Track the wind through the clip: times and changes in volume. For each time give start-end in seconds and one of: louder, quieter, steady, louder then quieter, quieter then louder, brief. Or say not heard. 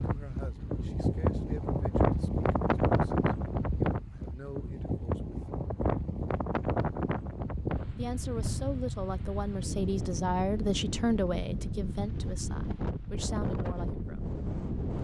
0.0-15.0 quieter.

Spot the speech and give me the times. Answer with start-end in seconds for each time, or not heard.
0.0-5.5, 8.0-14.3.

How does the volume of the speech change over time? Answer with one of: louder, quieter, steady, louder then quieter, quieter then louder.
louder then quieter.